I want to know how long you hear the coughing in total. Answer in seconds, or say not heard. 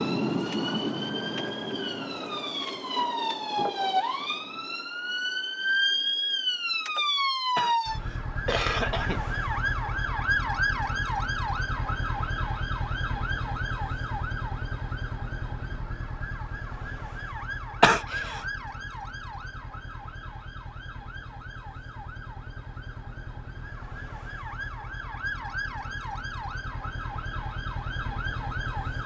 2 s.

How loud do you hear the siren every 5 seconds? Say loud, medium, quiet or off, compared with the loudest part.
loud, loud, loud, medium, quiet, medium.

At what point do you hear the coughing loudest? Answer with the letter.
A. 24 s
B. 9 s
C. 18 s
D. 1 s
C.